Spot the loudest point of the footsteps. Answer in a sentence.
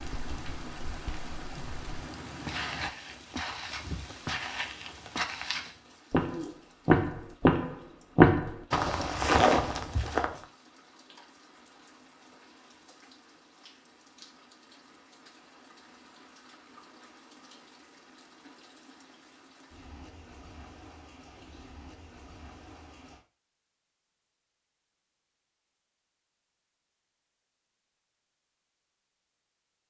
The loudest moment of the footsteps is at 8 seconds.